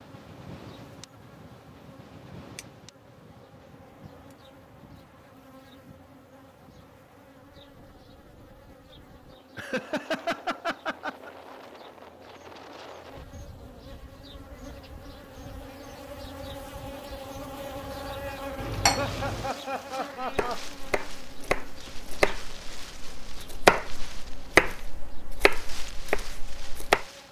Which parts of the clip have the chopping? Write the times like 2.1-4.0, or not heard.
20.2-27.1.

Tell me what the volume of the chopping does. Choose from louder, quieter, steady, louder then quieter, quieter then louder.
louder then quieter.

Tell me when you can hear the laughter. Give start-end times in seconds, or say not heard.
9.6-11.3, 18.9-20.7.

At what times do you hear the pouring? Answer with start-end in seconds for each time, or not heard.
18.6-19.5.